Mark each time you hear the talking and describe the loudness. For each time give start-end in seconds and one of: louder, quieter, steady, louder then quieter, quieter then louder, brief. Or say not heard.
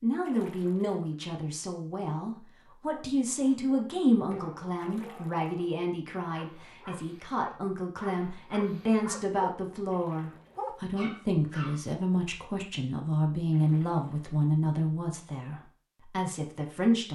0.0-17.1 steady.